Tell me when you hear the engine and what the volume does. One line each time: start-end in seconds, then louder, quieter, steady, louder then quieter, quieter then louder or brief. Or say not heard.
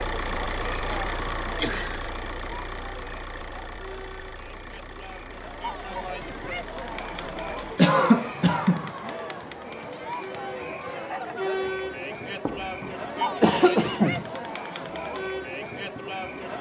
0.0-7.8 quieter.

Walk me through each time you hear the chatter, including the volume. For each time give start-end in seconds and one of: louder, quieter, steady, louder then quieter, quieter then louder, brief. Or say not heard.
0.0-16.5 louder.